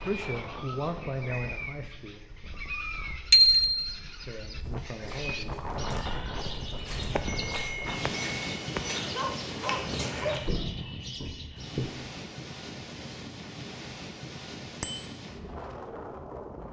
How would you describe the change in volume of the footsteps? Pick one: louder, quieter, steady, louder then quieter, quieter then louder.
louder.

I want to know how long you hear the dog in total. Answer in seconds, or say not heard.
2 s.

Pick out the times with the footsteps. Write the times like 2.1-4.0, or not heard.
4.5-11.9.